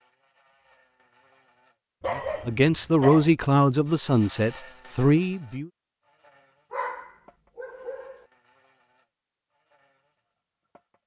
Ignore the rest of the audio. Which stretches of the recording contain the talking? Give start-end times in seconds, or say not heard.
2.1-5.7.